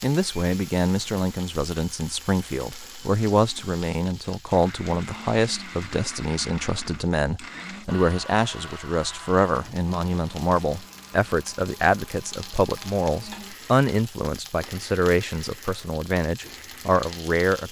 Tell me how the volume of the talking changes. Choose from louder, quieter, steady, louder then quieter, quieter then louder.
steady.